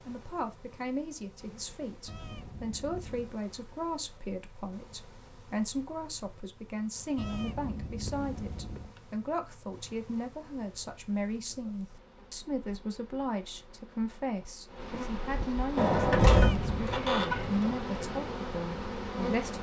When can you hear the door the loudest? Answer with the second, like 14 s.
16 s.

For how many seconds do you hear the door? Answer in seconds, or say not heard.
2 s.